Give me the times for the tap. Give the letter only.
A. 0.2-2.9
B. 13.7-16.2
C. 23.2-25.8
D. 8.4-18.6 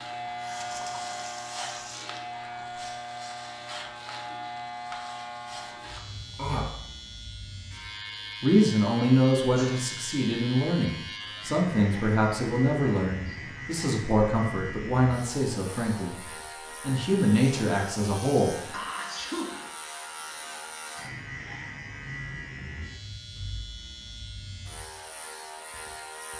A.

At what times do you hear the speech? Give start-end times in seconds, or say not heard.
8.4-18.6.